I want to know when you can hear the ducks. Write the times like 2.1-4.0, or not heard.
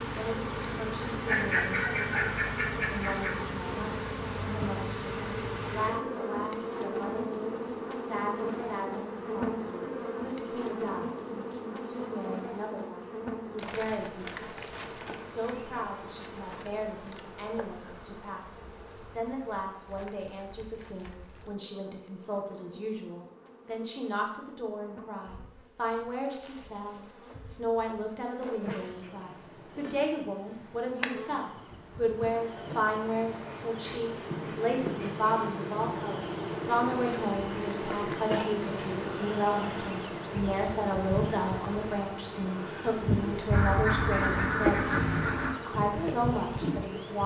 1.2-3.4, 43.5-45.5.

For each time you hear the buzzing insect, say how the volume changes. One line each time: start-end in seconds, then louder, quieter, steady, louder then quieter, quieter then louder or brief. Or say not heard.
0.0-47.2 quieter then louder.